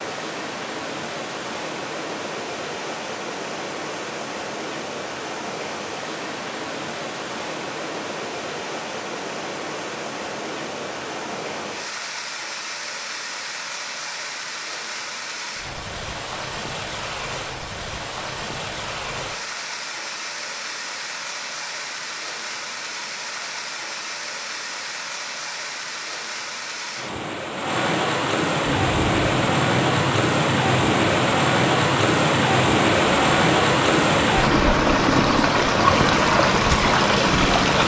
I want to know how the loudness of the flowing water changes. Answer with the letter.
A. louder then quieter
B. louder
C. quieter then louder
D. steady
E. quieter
B.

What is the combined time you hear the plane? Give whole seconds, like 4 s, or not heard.
9 s.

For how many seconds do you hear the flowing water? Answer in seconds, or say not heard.
38 s.